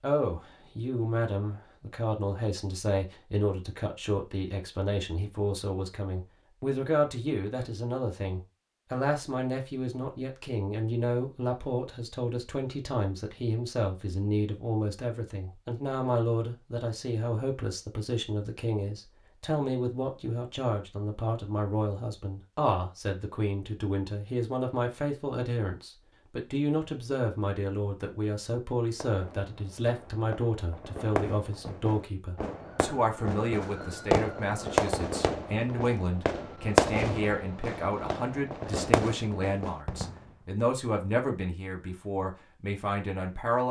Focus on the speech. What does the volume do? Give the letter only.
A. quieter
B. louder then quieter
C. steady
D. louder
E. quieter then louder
C.